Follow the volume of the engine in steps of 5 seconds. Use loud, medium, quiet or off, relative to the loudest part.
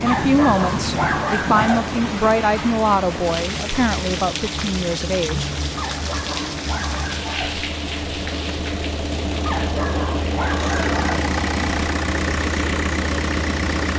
medium, medium, loud.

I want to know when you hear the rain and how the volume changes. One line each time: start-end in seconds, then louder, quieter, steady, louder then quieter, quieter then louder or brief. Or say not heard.
0.0-13.9 quieter.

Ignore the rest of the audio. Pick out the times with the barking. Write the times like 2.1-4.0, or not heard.
0.1-2.0, 5.8-7.7, 9.4-11.2.